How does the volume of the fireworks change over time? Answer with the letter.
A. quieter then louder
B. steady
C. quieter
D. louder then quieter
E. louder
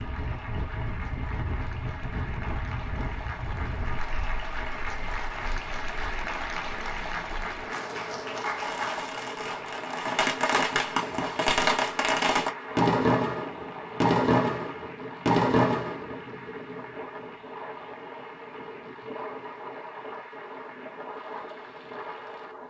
E.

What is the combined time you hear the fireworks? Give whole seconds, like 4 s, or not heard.
8 s.